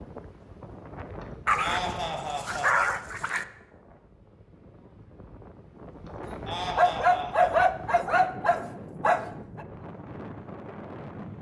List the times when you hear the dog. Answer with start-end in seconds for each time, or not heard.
1.4-3.5, 6.8-9.7.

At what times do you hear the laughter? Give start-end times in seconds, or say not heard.
1.2-2.9, 6.0-7.7.